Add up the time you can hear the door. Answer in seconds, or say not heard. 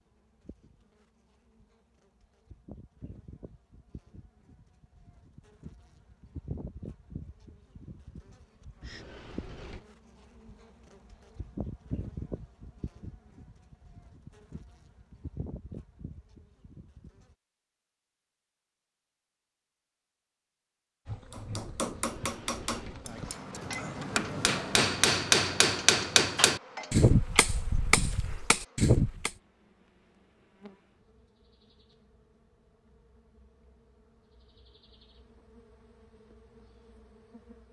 2 s.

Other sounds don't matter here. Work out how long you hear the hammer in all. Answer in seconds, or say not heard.
8 s.